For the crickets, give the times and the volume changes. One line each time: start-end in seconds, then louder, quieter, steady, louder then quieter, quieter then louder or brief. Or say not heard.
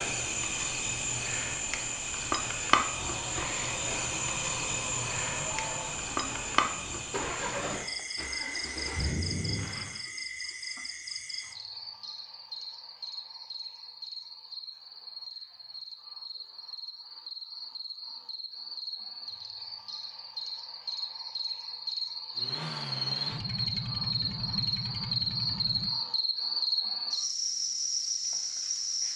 0.0-29.1 quieter then louder.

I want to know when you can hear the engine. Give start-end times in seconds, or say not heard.
2.9-10.1, 22.4-26.1.